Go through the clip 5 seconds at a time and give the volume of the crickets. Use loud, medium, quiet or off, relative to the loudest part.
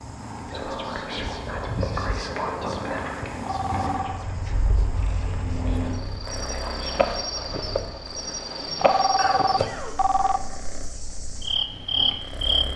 medium, loud, loud.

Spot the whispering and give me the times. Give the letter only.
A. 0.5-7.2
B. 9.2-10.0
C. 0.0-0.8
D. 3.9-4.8
A.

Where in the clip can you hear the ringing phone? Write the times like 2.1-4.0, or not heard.
3.5-4.2, 8.8-10.4.